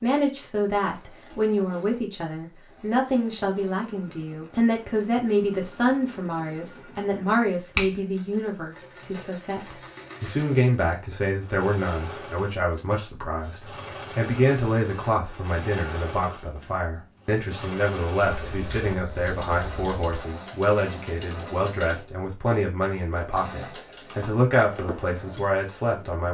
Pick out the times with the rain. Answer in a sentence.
The rain can't be heard in this clip.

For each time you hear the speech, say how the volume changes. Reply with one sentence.
You can hear the speech from 0.0 to 26.2 s, at a steady volume.